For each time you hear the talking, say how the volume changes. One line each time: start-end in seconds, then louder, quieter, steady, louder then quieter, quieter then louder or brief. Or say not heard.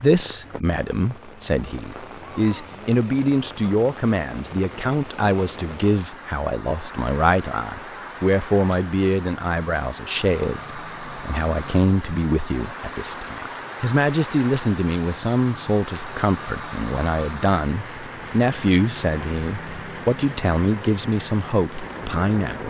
0.0-22.6 steady.